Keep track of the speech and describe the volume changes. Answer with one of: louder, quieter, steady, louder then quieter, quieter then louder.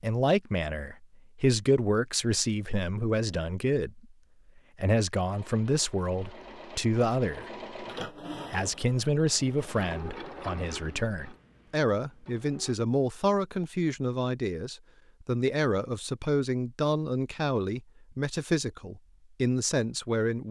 steady.